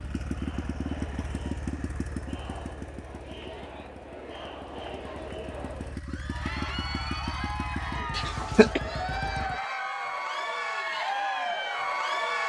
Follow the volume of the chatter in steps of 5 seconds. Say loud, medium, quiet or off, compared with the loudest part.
quiet, medium, loud.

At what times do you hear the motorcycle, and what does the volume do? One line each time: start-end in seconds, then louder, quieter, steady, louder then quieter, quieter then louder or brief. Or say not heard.
0.0-9.6 quieter then louder.